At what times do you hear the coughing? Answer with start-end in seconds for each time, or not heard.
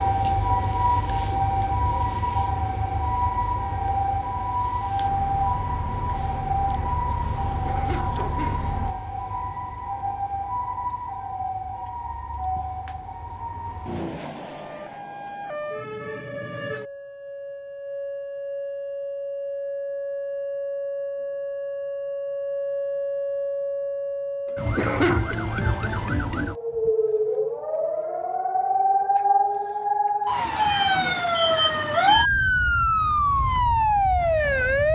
7.6-8.8, 24.8-25.4.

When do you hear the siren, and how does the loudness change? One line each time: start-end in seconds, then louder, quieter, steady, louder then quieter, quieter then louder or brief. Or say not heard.
0.0-34.9 quieter then louder.